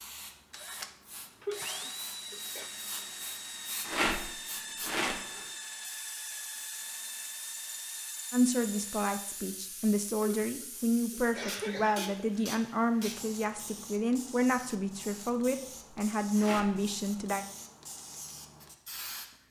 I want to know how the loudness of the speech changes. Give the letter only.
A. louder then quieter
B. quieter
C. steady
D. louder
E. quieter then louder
C.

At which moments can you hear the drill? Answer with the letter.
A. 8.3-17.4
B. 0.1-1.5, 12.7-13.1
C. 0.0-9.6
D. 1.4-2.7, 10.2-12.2
C.